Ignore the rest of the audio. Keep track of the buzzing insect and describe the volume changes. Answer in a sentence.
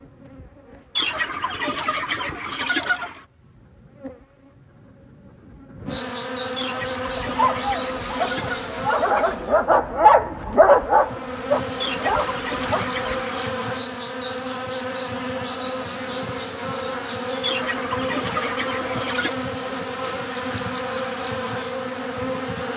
The volume of the buzzing insect goes up.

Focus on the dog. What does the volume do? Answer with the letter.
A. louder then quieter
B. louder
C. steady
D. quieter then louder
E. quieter
A.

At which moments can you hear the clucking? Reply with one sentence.
The clucking can be heard from 0.9 to 3.2 s, from 6.5 to 9.5 s, from 11.8 to 13.5 s and from 17.4 to 19.4 s.